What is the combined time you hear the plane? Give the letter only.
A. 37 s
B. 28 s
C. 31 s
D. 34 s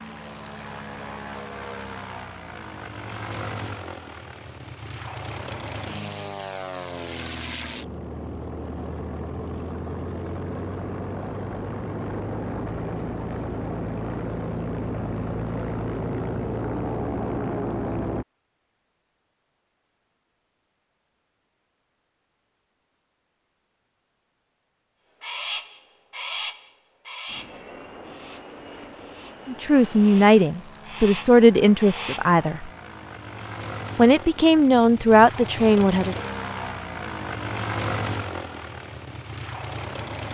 C.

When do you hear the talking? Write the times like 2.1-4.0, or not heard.
29.4-32.7, 34.0-36.1.